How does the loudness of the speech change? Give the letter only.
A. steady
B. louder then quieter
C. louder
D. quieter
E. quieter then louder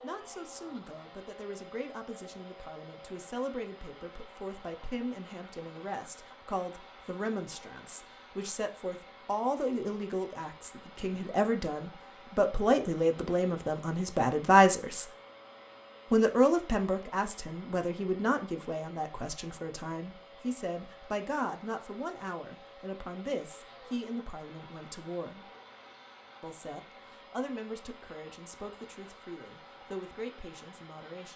B.